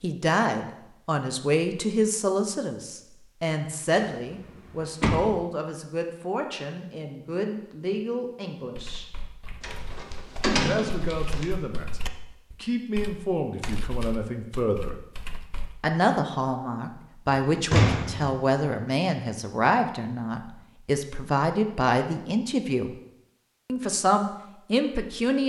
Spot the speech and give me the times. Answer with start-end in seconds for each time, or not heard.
0.0-9.1, 10.6-14.9, 15.8-22.9, 23.6-25.4.